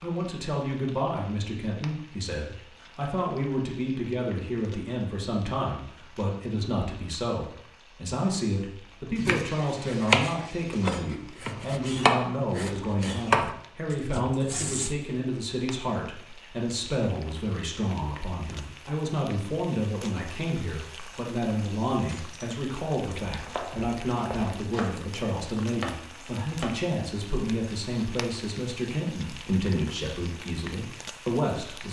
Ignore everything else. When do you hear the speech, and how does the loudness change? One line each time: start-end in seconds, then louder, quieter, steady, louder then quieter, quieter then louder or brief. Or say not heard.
0.0-31.8 steady.